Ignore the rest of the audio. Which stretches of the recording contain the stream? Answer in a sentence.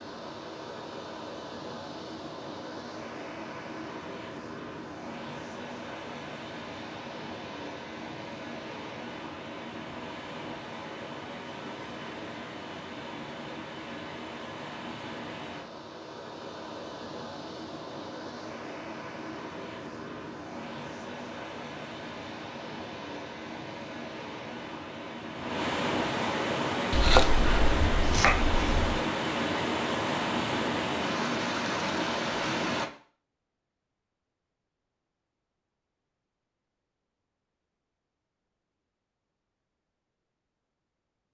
The stream can be heard from 0.0 to 32.9 s.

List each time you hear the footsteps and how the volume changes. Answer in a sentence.
You can't hear the footsteps here.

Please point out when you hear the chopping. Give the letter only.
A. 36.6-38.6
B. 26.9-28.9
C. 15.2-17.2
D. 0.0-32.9
B.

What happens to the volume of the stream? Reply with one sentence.
The volume of the stream goes up.